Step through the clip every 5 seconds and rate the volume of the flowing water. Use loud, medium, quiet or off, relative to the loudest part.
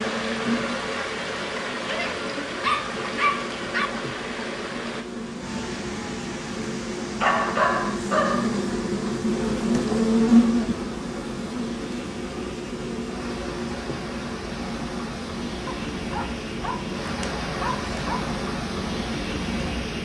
loud, medium, medium, loud.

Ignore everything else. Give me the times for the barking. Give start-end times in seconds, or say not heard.
1.9-3.9, 7.2-8.6, 15.7-18.3.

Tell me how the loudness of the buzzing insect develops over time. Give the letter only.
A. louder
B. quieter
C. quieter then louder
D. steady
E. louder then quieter
E.